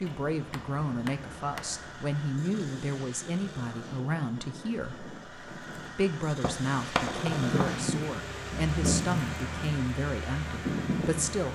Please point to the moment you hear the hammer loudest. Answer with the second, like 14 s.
7 s.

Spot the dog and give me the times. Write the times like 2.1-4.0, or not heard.
not heard.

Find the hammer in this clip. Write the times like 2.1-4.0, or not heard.
0.1-1.8, 6.4-7.7.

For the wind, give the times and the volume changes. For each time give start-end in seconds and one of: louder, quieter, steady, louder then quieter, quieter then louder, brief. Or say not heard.
0.0-11.5 louder.